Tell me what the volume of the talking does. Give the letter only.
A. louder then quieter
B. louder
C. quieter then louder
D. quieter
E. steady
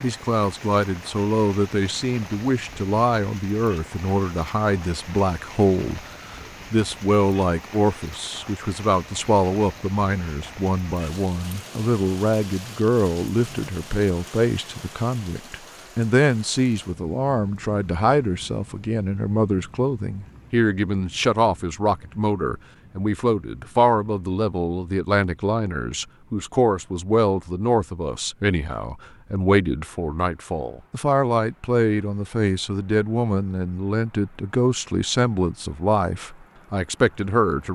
E.